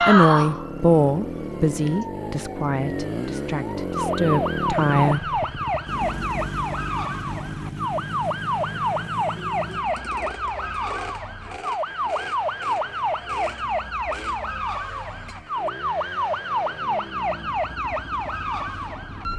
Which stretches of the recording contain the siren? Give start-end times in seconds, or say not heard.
0.0-19.3.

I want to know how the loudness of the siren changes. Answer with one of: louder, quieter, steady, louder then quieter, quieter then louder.
louder.